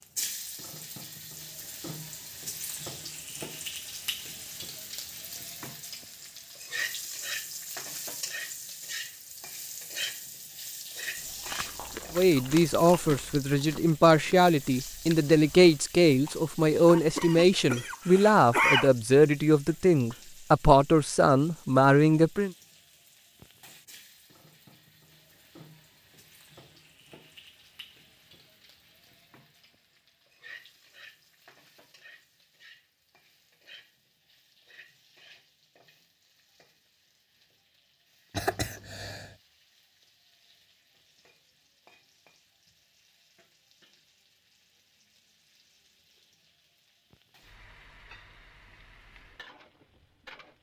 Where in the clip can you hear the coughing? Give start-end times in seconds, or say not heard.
16.9-18.9, 38.3-39.3.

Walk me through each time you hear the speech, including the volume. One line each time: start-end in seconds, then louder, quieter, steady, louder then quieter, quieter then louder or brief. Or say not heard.
12.2-22.5 steady.